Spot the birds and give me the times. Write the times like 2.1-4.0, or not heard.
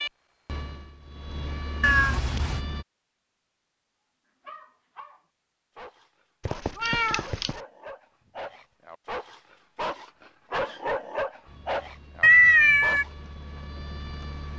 not heard.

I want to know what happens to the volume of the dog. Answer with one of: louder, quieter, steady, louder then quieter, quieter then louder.
louder.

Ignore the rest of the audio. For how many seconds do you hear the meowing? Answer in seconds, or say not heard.
3 s.